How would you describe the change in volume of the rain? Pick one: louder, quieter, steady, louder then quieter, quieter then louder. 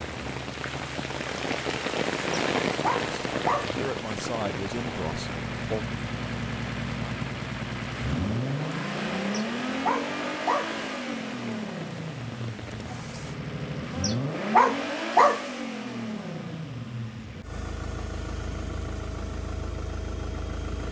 quieter.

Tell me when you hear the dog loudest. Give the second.
15 s.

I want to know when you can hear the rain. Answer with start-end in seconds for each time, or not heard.
0.0-13.4.